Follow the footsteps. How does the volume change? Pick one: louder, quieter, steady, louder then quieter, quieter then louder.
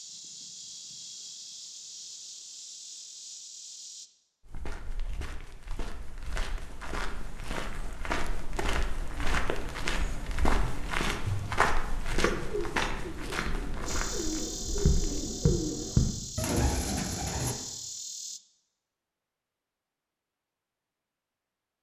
louder then quieter.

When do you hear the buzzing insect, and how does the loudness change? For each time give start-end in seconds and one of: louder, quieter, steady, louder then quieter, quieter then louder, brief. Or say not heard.
0.0-4.1 steady
13.8-18.4 steady.